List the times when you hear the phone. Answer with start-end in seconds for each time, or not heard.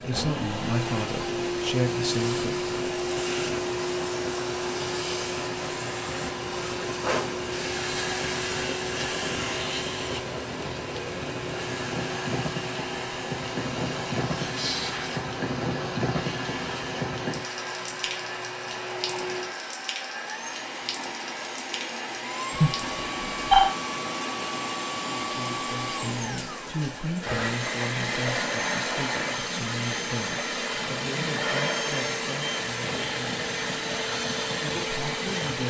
22.6-23.7.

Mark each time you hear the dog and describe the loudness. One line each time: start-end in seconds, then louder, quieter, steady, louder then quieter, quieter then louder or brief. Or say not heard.
not heard.